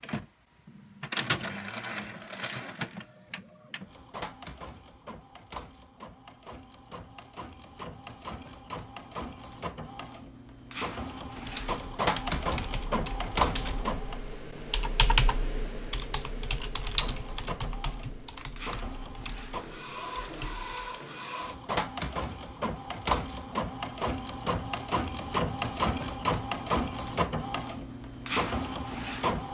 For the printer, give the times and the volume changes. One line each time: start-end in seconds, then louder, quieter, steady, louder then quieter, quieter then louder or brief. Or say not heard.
0.0-14.2 quieter then louder
16.8-29.5 louder.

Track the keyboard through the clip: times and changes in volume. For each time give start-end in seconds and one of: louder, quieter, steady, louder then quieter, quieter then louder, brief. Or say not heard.
11.2-21.0 louder then quieter.